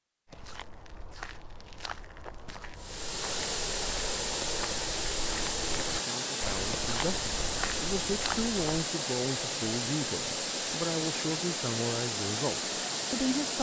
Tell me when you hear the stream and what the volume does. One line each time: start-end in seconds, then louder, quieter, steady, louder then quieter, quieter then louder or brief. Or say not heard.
2.8-13.5 steady.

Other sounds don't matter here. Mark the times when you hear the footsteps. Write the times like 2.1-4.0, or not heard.
0.2-8.9.